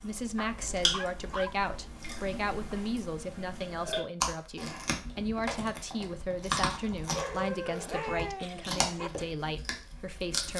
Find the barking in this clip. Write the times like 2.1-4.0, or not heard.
0.5-2.0, 7.1-9.1.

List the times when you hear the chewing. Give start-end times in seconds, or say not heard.
0.0-10.5.